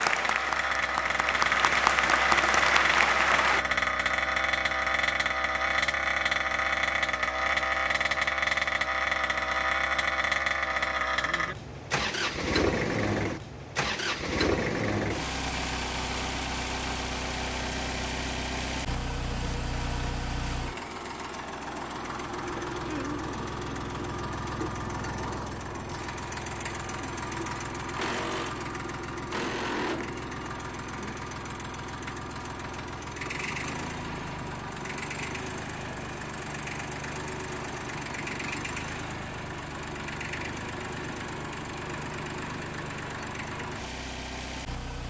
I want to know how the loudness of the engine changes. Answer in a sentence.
The loudness of the engine goes down.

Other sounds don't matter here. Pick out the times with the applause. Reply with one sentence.
You can hear the applause from 0.0 to 3.6 s.